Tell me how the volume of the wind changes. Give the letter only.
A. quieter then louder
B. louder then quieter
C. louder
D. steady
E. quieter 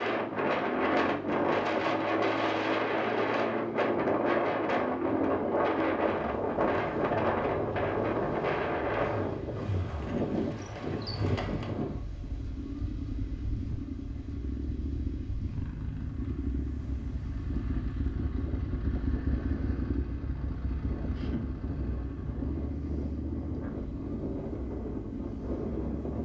A.